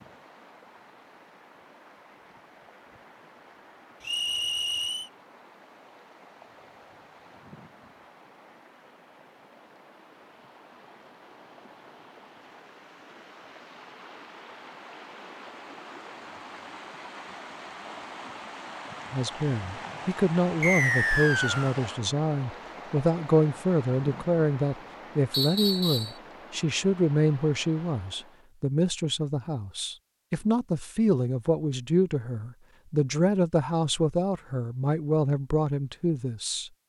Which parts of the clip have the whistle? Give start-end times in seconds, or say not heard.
4.0-5.1, 20.6-21.8, 25.3-26.1.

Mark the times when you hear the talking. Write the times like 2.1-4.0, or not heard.
19.1-36.7.